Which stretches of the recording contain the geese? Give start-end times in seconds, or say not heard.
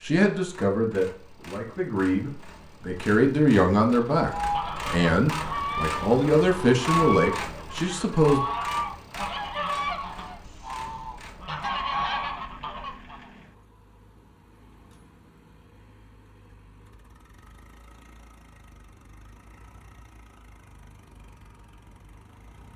4.2-13.2.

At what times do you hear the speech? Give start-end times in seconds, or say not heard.
0.0-8.4.